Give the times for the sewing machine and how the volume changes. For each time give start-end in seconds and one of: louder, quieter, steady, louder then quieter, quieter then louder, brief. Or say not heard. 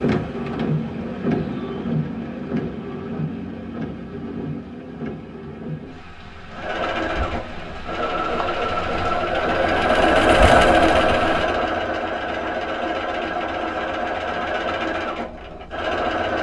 6.5-16.3 louder then quieter.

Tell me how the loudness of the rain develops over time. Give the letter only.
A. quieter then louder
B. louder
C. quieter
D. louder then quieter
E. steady
C.